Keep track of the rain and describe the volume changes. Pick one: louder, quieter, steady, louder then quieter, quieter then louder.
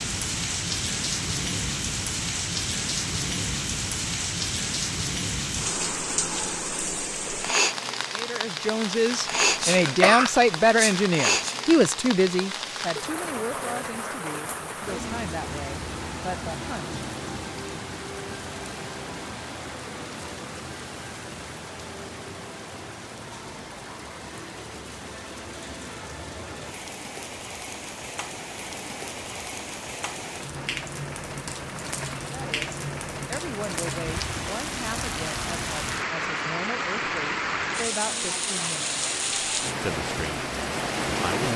quieter then louder.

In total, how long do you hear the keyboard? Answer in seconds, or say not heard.
not heard.